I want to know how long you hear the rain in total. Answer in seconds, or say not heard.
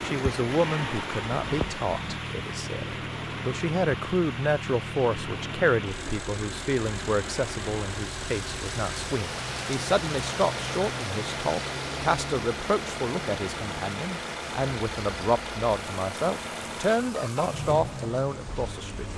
19 s.